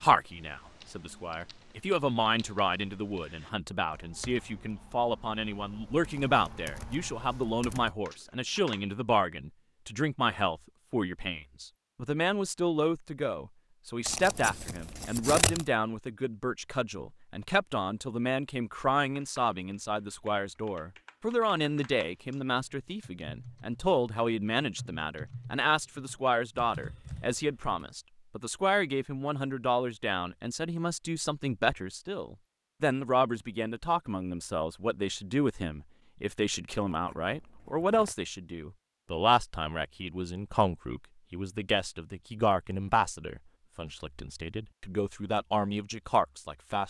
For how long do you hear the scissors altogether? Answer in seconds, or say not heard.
3 s.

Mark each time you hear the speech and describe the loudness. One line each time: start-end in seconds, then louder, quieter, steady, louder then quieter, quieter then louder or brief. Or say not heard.
0.0-46.8 steady.